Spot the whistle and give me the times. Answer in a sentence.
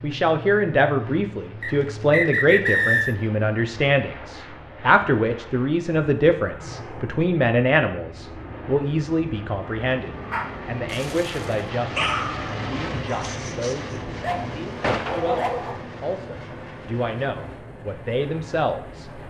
The whistle can be heard from 1.6 to 3.1 s.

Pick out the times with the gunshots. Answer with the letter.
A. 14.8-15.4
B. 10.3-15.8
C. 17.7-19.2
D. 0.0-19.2
A.